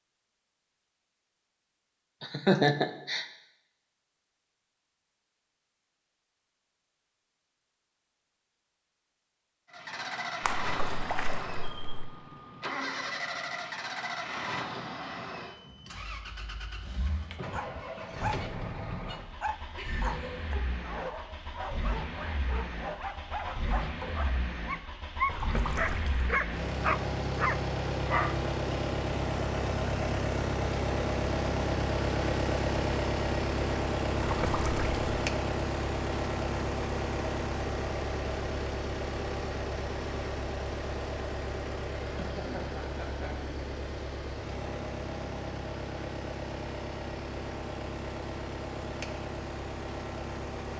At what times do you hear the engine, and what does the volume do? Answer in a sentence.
You can hear the engine from 9.7 to 50.7 s, getting louder then quieter.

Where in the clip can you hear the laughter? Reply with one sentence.
The laughter can be heard from 2.2 to 3.2 s, from 19.3 to 20.6 s and from 42.0 to 43.4 s.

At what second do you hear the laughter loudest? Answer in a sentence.
The loudest moment of the laughter is at 3 seconds.